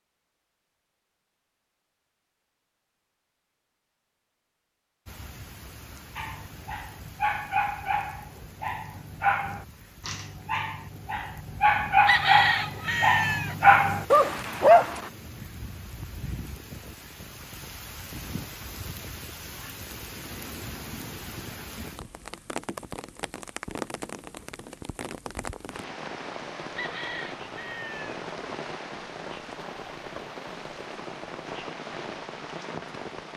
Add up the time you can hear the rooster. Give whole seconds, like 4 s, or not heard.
3 s.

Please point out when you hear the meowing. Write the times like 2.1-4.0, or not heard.
not heard.